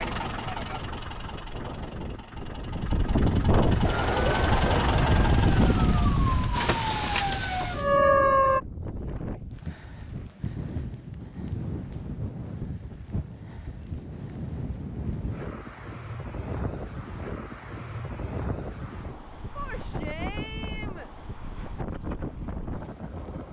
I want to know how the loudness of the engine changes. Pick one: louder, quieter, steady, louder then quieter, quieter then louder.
quieter then louder.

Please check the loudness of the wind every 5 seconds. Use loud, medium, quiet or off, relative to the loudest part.
loud, loud, medium, medium, medium.